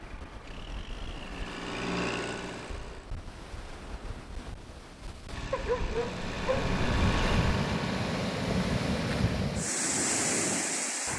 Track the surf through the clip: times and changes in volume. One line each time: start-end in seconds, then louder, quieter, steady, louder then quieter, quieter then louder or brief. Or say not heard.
0.0-11.1 louder.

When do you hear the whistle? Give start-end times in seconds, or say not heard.
not heard.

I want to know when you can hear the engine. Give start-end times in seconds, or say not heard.
0.0-3.1, 5.3-9.4.